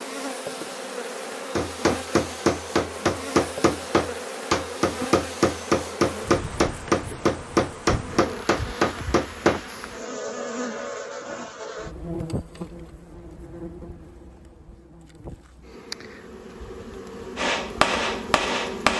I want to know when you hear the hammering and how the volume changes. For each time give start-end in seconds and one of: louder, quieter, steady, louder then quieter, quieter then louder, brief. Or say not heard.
1.6-9.6 steady
17.4-18.9 brief.